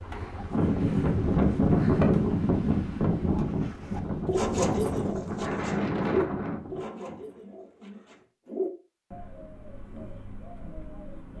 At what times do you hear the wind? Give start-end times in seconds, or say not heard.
0.0-6.8.